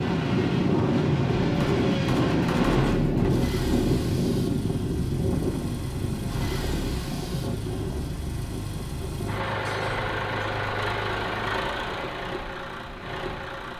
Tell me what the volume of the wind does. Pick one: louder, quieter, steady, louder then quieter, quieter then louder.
quieter.